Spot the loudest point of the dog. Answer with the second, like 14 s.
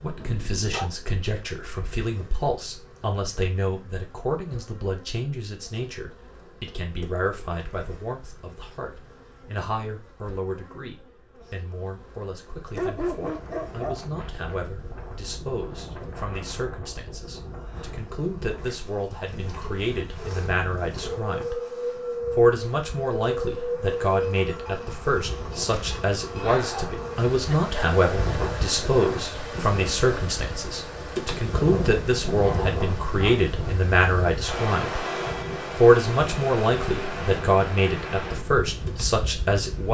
13 s.